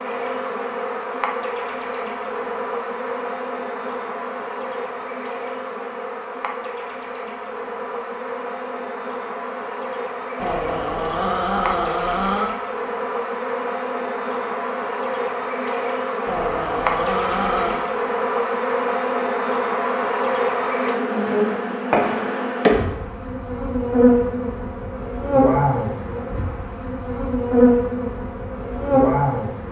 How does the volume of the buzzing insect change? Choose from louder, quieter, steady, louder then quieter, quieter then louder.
louder.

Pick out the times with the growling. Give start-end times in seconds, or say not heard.
10.3-12.6, 16.2-17.9.